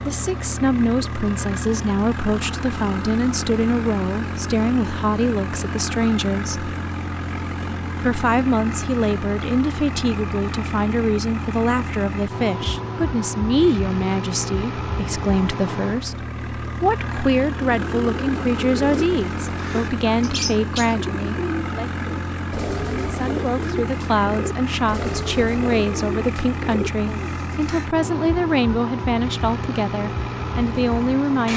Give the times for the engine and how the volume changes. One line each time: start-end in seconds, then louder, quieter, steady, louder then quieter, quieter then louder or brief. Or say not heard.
0.0-31.5 steady.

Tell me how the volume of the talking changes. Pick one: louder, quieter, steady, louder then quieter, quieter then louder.
steady.